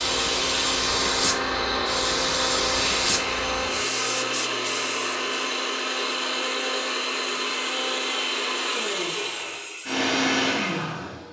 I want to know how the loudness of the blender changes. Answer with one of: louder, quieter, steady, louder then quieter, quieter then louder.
steady.